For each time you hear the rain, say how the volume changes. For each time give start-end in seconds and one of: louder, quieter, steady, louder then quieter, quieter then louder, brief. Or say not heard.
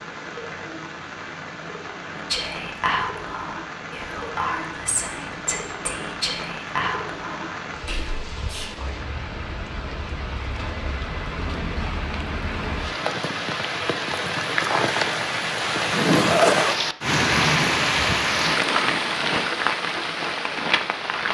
0.0-21.2 louder.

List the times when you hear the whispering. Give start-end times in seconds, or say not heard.
2.2-8.7.